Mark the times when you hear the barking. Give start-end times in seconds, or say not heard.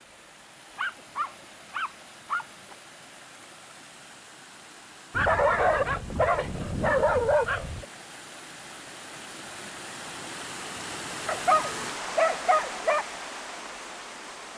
0.8-2.8, 5.1-7.8, 11.2-13.1.